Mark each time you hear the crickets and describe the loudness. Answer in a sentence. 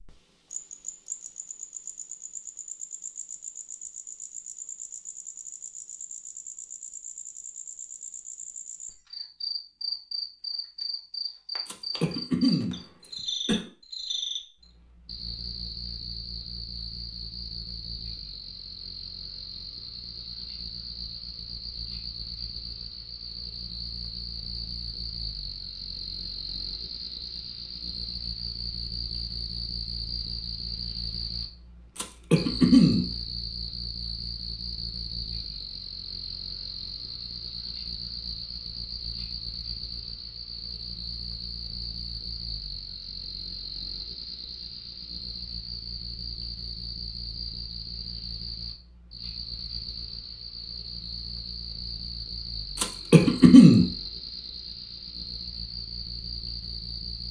The crickets can be heard from 0.0 to 57.2 s, at a steady volume.